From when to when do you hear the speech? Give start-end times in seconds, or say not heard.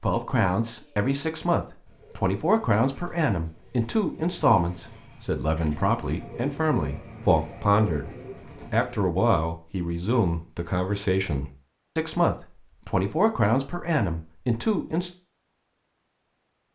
0.0-8.1, 8.7-15.1.